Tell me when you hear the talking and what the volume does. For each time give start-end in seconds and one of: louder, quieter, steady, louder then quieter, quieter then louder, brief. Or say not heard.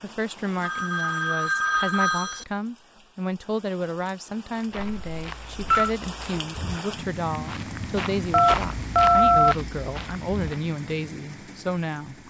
0.0-12.2 steady.